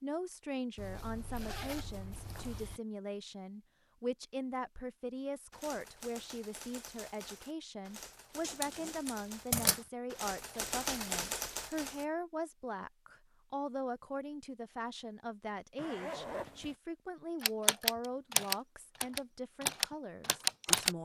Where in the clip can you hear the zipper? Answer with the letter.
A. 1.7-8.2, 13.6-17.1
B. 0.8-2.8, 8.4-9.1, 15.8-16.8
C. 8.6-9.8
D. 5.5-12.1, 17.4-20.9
B.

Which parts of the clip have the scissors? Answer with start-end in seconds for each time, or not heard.
8.6-9.8.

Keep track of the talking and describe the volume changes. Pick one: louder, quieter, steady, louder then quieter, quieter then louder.
steady.